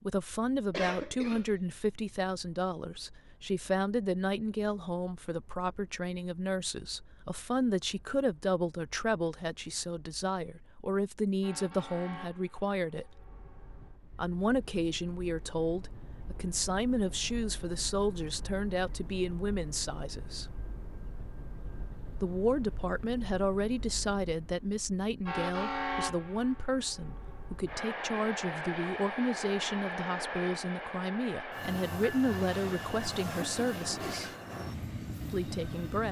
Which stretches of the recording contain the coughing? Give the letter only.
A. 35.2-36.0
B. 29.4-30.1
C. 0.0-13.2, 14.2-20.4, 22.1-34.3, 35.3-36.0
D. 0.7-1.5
D.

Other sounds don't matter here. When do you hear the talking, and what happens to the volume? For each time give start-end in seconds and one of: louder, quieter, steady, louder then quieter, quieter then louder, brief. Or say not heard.
0.0-13.2 steady
14.2-20.4 steady
22.1-34.3 steady
35.3-36.0 brief.